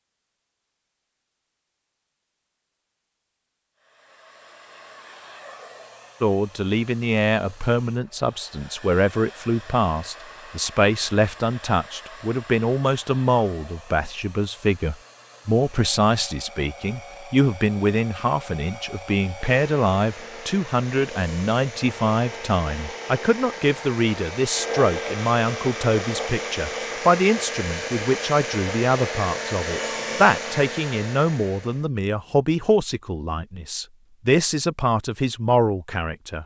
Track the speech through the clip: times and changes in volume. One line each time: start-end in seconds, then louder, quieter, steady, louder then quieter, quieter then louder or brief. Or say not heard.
6.2-36.4 steady.